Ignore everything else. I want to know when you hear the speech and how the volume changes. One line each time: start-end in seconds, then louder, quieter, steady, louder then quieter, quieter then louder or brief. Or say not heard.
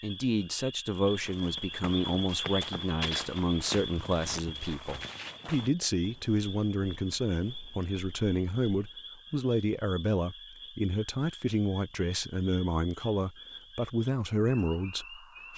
0.0-15.5 steady.